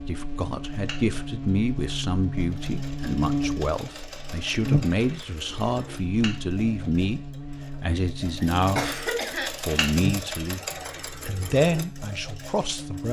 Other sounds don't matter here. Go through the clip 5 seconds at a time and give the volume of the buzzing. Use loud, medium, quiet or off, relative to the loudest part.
loud, medium, medium.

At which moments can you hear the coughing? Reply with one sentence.
You can hear the coughing from 8.4 to 9.8 s.